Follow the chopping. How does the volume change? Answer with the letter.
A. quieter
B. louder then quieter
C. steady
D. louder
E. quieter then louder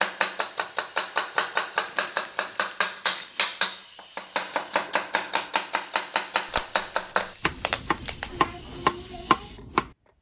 C.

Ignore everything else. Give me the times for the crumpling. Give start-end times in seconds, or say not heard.
1.8-3.5, 6.5-8.3.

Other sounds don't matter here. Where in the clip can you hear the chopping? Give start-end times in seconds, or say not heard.
0.0-9.9.